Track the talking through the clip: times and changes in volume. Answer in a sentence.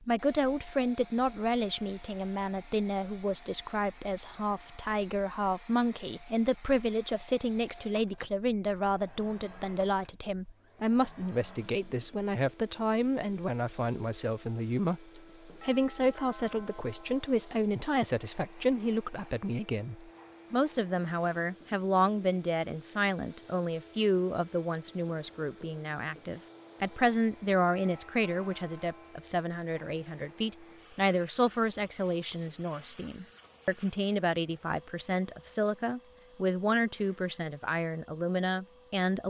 You can hear the talking from 0.0 to 39.2 s, at a steady volume.